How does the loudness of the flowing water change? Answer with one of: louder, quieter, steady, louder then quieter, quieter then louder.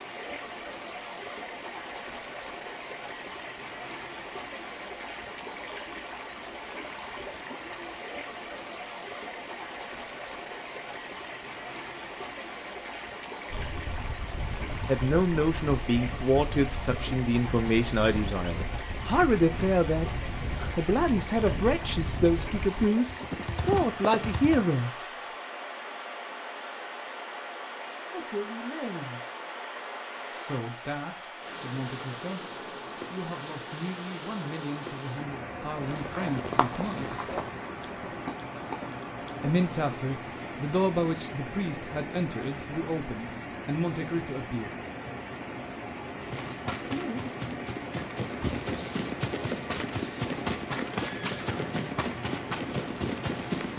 steady.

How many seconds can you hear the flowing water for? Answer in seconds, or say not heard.
54 s.